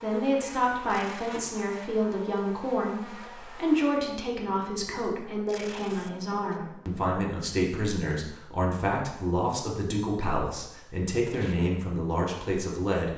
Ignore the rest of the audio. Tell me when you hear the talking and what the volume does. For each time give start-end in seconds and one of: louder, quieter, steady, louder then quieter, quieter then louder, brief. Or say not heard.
0.0-13.1 steady.